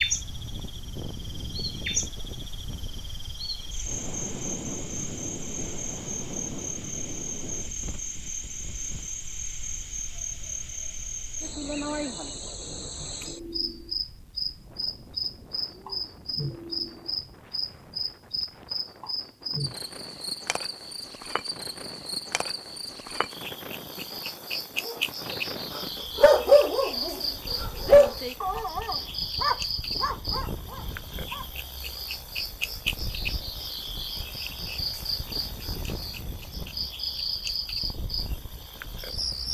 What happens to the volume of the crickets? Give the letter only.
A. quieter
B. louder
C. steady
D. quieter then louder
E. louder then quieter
C.